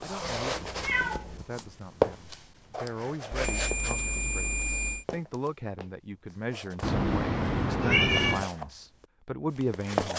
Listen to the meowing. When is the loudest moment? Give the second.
8 s.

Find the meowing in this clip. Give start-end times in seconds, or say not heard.
0.2-1.4, 6.8-8.4.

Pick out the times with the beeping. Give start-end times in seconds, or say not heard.
3.3-5.0.